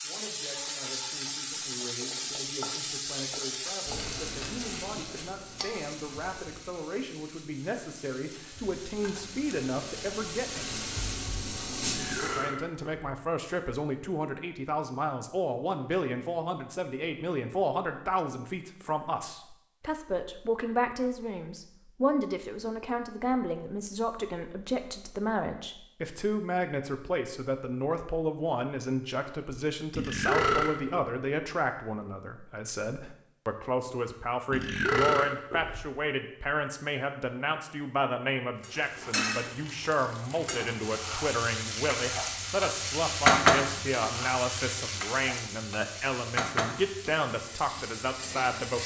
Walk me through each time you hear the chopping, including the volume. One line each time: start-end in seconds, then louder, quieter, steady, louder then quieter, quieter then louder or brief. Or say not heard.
not heard.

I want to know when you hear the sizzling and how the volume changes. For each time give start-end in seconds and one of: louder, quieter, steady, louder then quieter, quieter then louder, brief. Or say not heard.
0.0-12.5 quieter then louder
38.6-48.8 louder then quieter.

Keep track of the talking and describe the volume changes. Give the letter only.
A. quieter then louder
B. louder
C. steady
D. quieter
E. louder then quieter
B.